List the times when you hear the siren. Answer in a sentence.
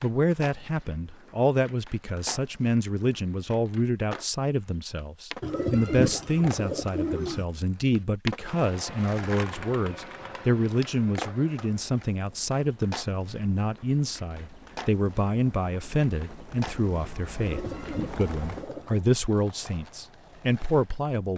You can't hear the siren here.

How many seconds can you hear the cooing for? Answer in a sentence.
The cooing can be heard for 4 seconds in total.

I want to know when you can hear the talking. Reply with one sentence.
You can hear the talking from 0.0 to 21.3 s.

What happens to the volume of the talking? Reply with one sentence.
The loudness of the talking stays about the same.